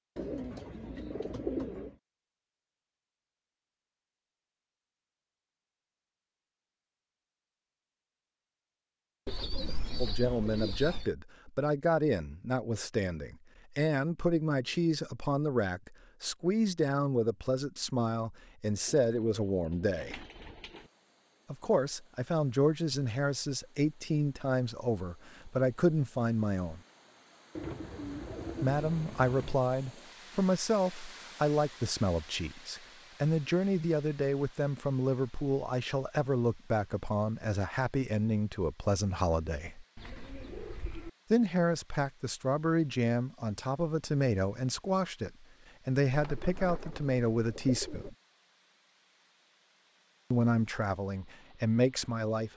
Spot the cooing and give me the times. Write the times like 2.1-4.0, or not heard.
0.1-1.9, 9.2-11.1, 18.9-20.9, 27.6-29.6, 40.0-41.1, 46.1-48.1.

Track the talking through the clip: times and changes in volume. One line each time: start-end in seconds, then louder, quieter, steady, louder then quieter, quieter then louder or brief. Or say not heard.
10.0-20.2 steady
21.5-26.8 quieter then louder
28.6-39.9 steady
41.3-48.1 steady
50.3-52.5 brief.